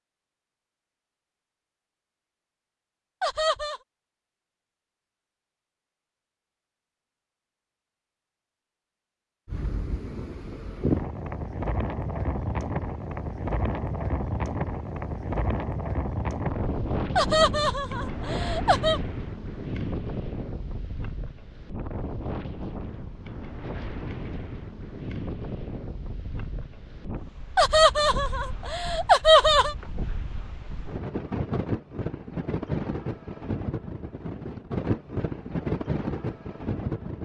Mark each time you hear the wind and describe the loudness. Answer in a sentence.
The wind can be heard from 9.4 to 37.1 s, getting quieter then louder.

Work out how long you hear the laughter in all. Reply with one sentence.
You can hear the laughter for 5 seconds altogether.